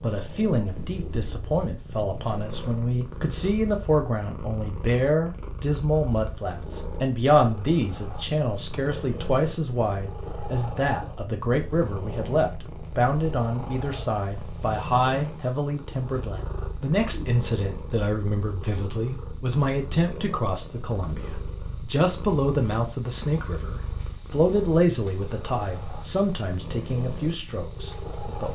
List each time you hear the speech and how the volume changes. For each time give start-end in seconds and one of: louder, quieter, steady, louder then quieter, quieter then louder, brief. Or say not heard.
0.0-28.5 steady.